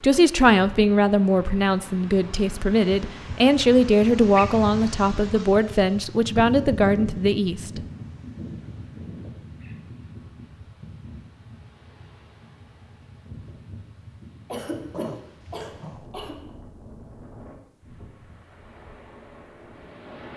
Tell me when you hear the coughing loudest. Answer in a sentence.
The loudest moment of the coughing is at 15 seconds.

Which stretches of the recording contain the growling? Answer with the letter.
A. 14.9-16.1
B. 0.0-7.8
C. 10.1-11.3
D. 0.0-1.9
A.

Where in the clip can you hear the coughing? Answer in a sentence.
The coughing can be heard from 14.5 to 16.4 s.